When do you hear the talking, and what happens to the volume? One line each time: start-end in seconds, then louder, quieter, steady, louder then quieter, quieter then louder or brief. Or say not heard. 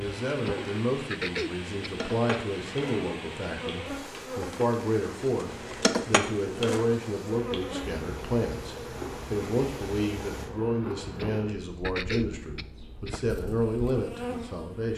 0.0-14.9 steady.